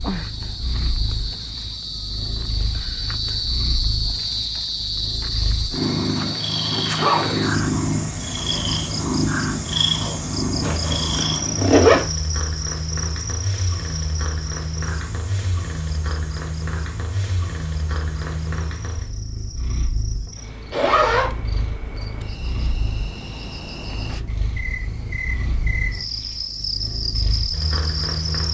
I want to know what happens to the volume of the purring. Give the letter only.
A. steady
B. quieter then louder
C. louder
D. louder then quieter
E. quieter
D.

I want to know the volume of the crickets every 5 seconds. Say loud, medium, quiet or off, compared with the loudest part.
loud, loud, loud, quiet, medium, loud.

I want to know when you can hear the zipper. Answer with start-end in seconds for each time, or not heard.
6.2-7.3, 10.6-12.1, 20.7-21.3.